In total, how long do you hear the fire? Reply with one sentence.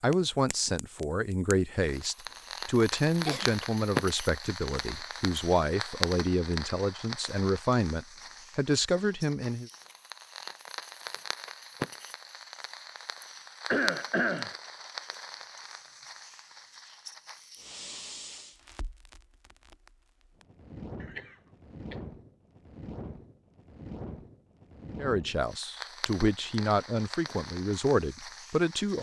The fire can be heard for 29 seconds in total.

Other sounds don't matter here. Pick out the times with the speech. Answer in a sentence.
You can hear the speech from 0.0 to 9.7 s and from 25.0 to 28.9 s.